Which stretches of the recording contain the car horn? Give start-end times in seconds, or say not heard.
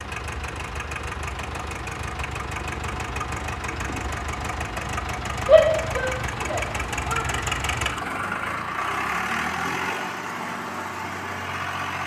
not heard.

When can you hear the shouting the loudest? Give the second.
6 s.